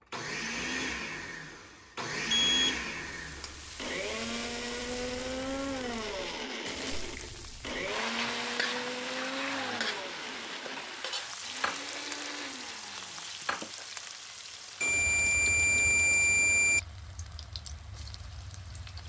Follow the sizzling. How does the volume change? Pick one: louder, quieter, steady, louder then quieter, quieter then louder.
louder then quieter.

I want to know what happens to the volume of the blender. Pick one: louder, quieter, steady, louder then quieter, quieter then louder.
quieter.